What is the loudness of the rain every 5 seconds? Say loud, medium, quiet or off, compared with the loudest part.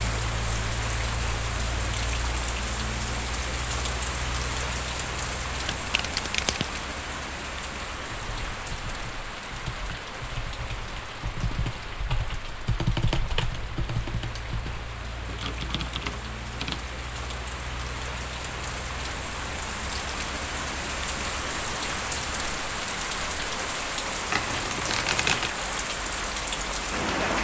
loud, medium, medium, medium, loud, loud.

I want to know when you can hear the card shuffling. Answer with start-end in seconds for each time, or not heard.
5.7-6.7, 24.3-25.6.